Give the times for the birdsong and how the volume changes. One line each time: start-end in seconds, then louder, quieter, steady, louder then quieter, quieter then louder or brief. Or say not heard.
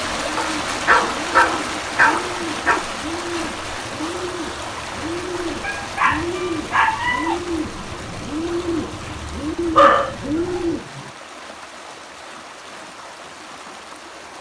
0.0-10.8 louder.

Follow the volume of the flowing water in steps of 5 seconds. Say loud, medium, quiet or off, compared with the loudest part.
loud, medium, medium.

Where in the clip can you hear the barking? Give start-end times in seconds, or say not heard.
0.3-2.9, 5.6-7.3, 9.7-11.1.